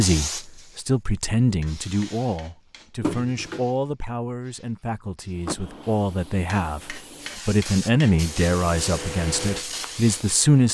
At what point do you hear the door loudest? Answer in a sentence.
The loudest moment of the door is at 3 seconds.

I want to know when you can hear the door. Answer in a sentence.
You can hear the door from 3.0 to 3.6 s and from 5.5 to 6.3 s.